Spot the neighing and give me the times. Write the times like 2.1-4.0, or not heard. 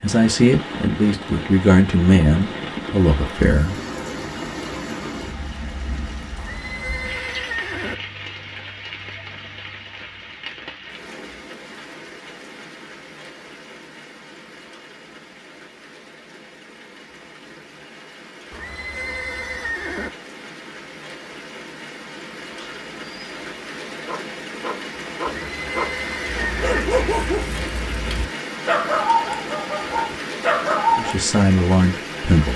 6.3-8.0, 18.5-20.1, 25.3-26.9.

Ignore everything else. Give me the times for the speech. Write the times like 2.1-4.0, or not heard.
0.0-3.8, 30.9-32.5.